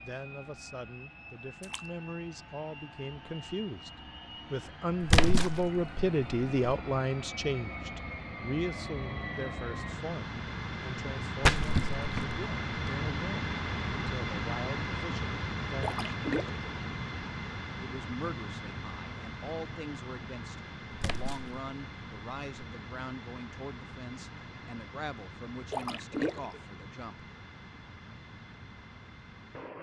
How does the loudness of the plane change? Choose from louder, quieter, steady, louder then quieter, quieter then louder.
louder then quieter.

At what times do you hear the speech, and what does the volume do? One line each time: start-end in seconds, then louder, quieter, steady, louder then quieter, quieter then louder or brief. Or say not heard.
0.0-16.0 louder then quieter
17.8-27.2 steady.